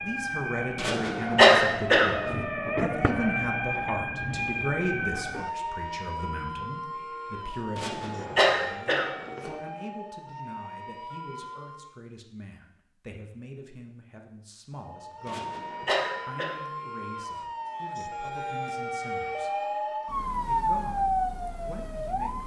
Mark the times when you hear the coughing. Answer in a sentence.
The coughing can be heard from 0.8 to 2.4 s, from 7.8 to 9.5 s and from 15.2 to 16.6 s.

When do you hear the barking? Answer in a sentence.
You can't hear the barking here.